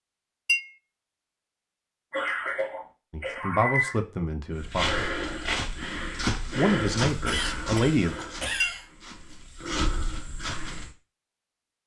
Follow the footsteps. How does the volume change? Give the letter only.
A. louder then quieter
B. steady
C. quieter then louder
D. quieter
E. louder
C.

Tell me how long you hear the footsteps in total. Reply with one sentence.
You can hear the footsteps for 6 seconds altogether.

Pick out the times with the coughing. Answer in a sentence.
You can hear the coughing from 2.1 to 4.0 s and from 7.2 to 8.8 s.